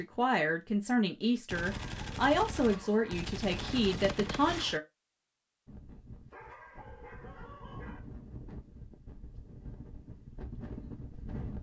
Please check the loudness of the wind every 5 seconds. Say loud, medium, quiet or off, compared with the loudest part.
off, medium, loud.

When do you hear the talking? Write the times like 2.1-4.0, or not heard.
0.0-4.8.